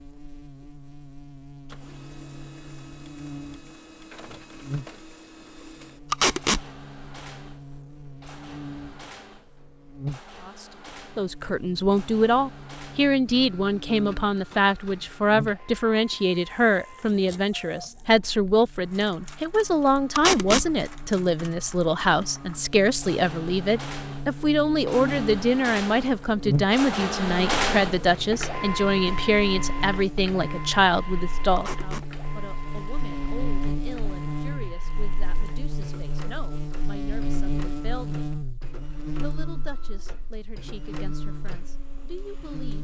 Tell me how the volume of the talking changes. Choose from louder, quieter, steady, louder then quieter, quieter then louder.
quieter.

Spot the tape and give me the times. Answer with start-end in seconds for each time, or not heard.
6.1-6.6, 20.1-20.6, 31.6-32.0.